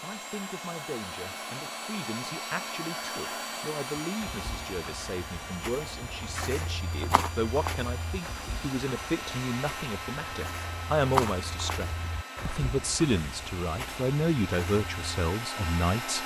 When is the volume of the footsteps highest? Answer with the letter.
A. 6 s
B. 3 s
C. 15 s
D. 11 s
D.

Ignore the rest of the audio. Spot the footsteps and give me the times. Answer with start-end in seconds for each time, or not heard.
4.2-15.1.